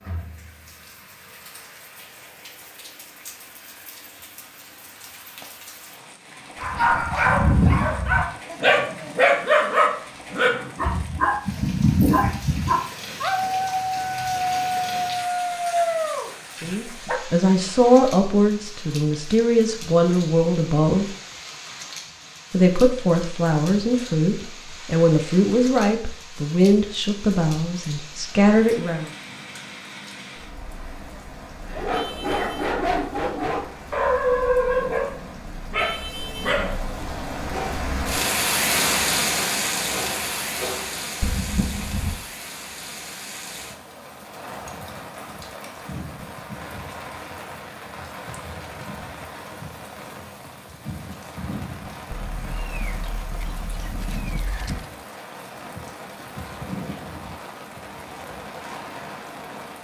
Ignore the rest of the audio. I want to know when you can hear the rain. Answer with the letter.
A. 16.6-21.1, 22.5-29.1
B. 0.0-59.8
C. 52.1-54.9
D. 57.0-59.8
B.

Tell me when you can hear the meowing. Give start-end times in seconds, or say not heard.
52.1-54.9.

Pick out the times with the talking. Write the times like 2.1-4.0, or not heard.
16.6-21.1, 22.5-29.1.